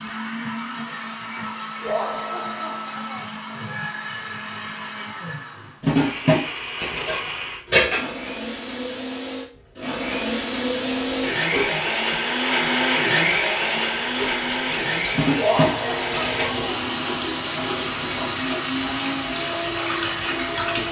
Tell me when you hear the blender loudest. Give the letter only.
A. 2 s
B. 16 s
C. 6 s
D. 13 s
D.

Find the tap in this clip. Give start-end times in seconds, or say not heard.
10.8-20.8.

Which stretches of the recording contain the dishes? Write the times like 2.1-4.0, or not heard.
5.8-8.1, 15.2-16.6.